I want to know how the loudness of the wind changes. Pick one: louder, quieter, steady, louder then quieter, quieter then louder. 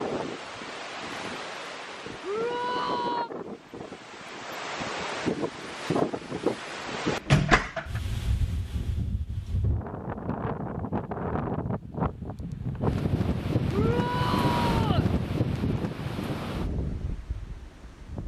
louder.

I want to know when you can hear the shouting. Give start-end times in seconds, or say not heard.
2.2-3.3, 13.7-15.1.